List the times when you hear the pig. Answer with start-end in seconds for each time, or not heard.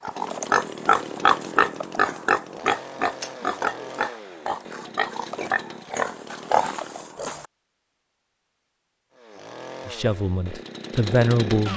0.1-7.5.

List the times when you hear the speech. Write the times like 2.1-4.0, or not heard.
9.8-11.7.